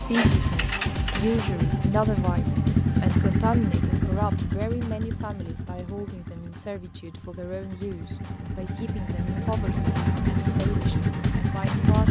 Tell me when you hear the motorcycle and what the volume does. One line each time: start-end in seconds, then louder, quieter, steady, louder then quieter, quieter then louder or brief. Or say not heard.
0.0-12.0 quieter then louder.